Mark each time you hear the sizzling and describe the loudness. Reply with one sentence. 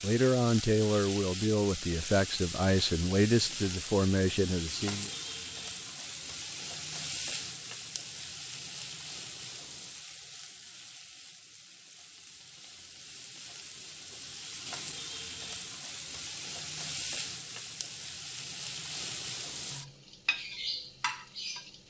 You can hear the sizzling from 0.0 to 21.8 s, getting quieter then louder.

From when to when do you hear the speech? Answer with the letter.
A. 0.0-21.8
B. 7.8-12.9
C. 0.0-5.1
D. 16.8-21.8
C.